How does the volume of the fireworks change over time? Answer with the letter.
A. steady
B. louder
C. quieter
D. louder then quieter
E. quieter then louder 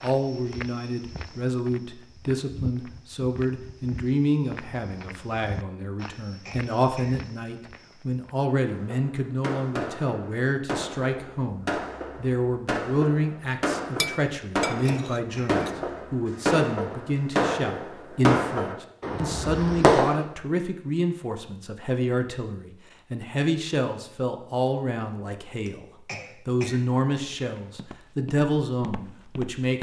B.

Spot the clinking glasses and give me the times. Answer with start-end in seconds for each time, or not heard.
13.9-15.8.